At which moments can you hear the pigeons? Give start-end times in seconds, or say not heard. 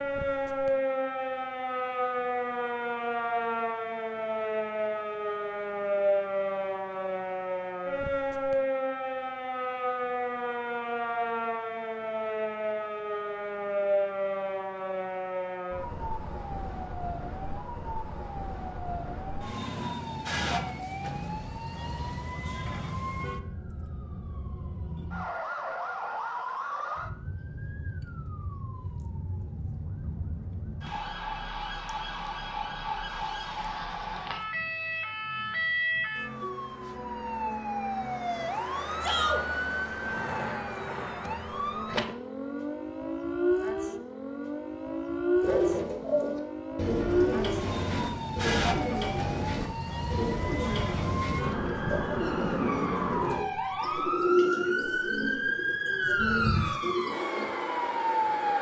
45.4-57.5.